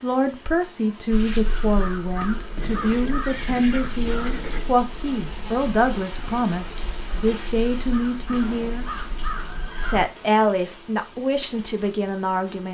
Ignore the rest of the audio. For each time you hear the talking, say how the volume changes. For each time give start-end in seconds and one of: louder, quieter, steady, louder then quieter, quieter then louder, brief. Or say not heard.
0.0-8.8 steady
9.8-12.7 brief.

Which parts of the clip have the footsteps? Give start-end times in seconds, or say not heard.
not heard.